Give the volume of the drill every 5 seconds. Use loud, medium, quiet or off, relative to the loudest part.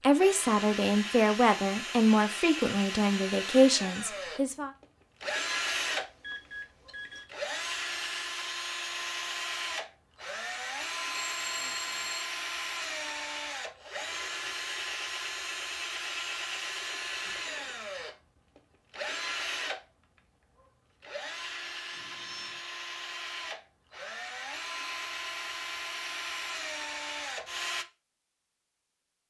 loud, loud, loud, loud, medium, loud.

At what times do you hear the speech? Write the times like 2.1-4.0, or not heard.
0.0-4.7.